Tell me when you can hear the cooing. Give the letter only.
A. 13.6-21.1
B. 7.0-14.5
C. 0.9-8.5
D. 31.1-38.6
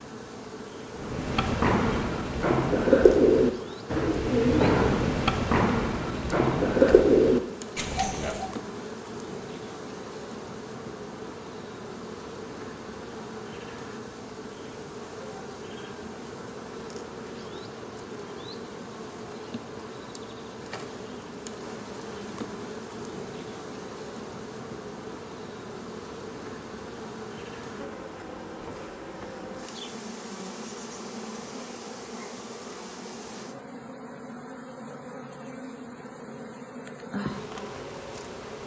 C.